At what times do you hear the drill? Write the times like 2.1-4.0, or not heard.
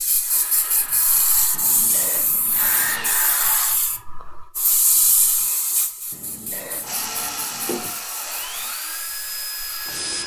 0.1-3.8, 6.8-10.2.